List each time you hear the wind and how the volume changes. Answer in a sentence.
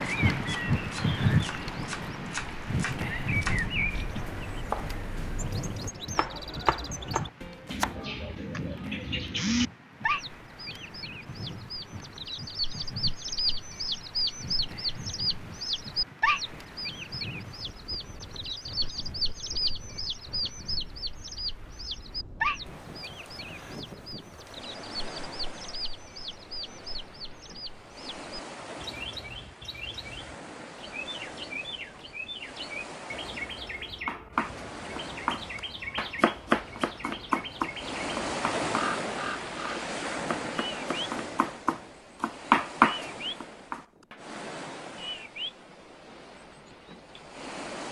You can hear the wind from 0.0 to 47.8 s, getting quieter then louder.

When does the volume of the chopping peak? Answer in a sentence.
The loudest moment of the chopping is at 43 seconds.